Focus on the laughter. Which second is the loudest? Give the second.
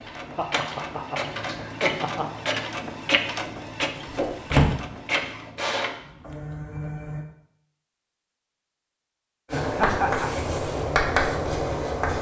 10 s.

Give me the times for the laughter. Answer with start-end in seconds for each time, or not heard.
0.3-2.2, 9.5-10.3.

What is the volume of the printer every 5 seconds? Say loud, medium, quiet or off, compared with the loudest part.
loud, loud, off.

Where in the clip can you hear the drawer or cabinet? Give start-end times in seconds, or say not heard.
4.0-4.8.